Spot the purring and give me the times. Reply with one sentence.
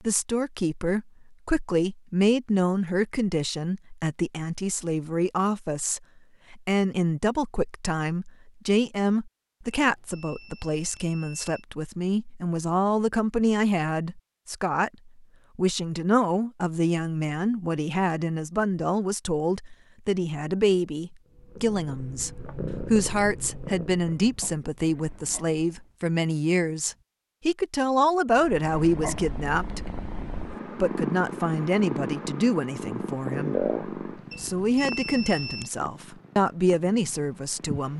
The purring can be heard from 21.2 to 25.9 s and from 28.3 to 37.9 s.